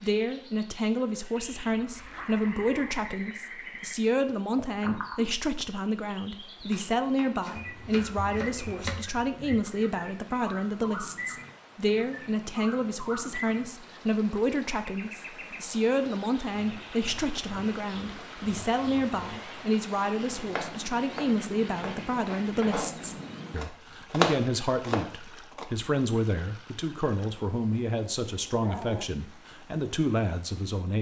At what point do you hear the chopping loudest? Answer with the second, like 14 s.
24 s.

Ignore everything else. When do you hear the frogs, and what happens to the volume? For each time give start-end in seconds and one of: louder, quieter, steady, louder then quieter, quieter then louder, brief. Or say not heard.
not heard.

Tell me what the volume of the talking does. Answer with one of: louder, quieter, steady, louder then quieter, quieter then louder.
steady.